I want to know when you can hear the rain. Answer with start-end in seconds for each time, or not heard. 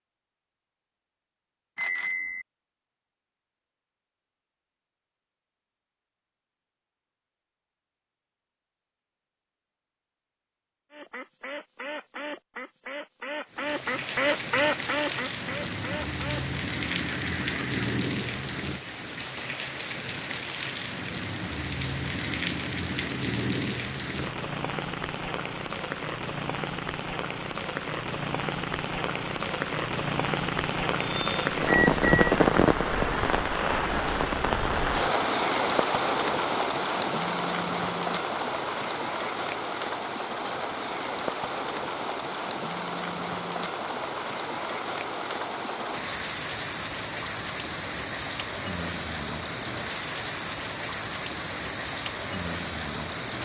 13.5-53.4.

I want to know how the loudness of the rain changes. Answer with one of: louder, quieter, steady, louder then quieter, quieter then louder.
louder then quieter.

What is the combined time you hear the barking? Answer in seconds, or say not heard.
not heard.